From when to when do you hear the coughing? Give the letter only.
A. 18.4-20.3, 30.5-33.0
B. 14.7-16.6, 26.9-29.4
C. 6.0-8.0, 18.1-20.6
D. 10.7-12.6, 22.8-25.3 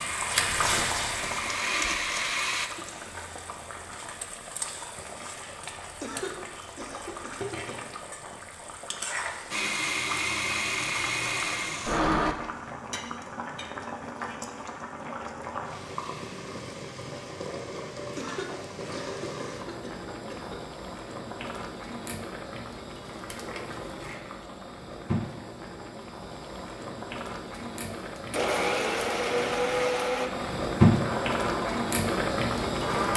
C.